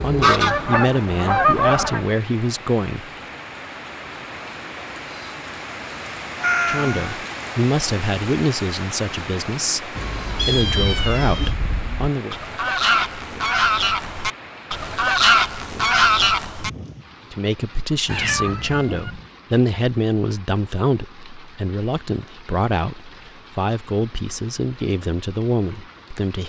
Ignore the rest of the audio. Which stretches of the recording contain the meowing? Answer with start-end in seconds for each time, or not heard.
6.4-7.2, 9.9-11.6, 18.1-19.2.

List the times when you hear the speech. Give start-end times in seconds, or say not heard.
0.0-3.0, 6.7-12.3, 17.3-26.4.